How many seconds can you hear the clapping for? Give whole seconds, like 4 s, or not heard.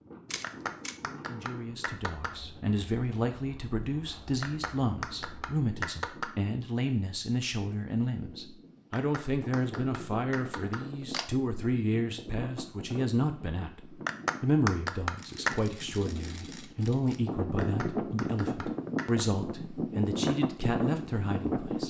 9 s.